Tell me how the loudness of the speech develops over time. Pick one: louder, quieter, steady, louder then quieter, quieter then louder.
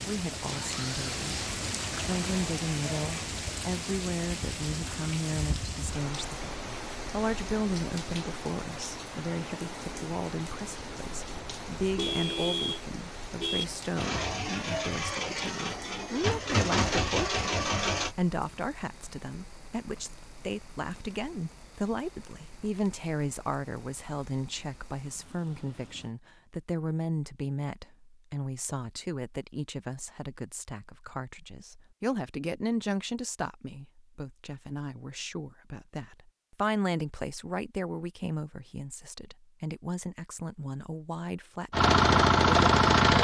steady.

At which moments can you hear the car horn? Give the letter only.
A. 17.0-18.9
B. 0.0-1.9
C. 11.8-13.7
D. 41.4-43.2
C.